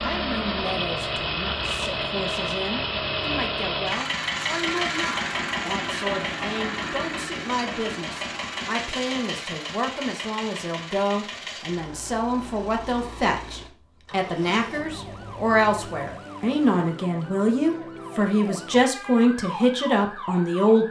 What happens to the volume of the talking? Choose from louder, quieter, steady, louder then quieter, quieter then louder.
louder.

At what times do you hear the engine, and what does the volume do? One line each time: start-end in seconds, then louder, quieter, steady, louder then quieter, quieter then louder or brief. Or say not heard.
0.0-16.1 quieter.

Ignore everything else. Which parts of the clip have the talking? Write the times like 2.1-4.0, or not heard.
0.0-20.8.